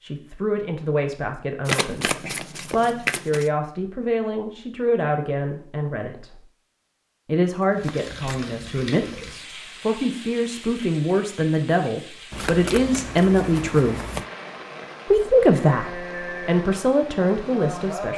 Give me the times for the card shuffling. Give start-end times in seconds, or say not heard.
1.6-3.5, 7.6-8.4, 12.3-14.2.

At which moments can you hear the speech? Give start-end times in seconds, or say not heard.
0.0-6.4, 7.2-14.0, 15.1-18.1.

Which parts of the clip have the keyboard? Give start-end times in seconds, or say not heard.
not heard.